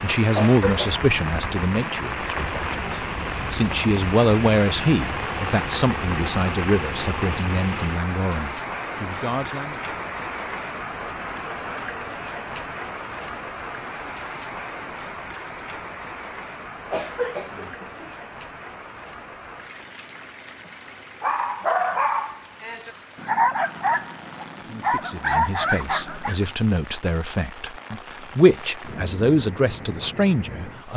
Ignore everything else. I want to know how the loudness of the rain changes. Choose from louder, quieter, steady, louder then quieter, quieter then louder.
quieter.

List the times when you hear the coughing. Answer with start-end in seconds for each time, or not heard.
0.3-1.1, 16.9-18.2.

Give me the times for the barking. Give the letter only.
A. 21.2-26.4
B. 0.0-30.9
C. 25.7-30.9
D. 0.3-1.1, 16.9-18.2
A.